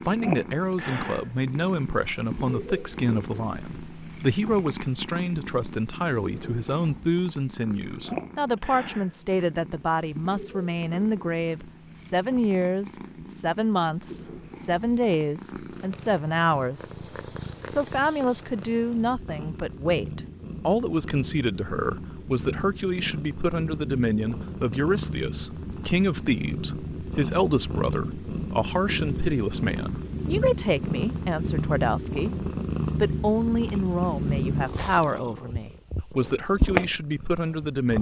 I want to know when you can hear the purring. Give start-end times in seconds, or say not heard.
0.0-37.9.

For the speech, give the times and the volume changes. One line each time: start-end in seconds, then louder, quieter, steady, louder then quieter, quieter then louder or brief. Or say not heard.
0.1-16.9 steady
17.7-37.9 steady.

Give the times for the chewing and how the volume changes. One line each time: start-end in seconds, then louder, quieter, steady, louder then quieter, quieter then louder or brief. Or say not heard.
not heard.